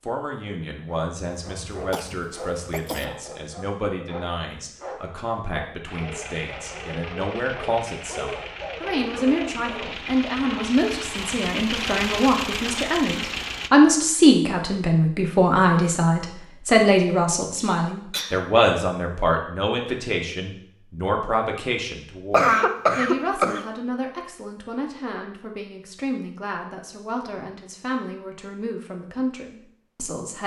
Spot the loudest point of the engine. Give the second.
12 s.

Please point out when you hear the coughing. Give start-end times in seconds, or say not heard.
1.2-3.0, 17.4-18.4, 22.3-23.6.